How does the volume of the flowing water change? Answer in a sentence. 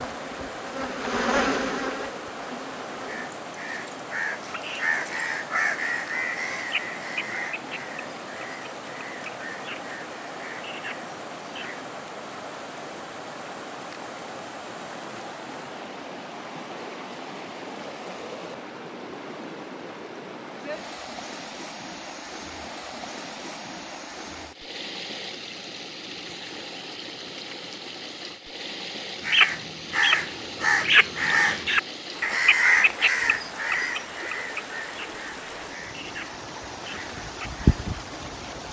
The volume of the flowing water stays about the same.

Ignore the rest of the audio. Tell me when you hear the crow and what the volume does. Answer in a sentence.
You can hear the crow from 3.0 to 11.8 s, getting quieter; and from 29.2 to 37.6 s, getting quieter.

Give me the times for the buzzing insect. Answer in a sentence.
The buzzing insect can be heard from 0.0 to 3.3 s and from 37.1 to 38.5 s.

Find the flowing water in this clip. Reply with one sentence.
The flowing water can be heard from 0.0 to 38.6 s.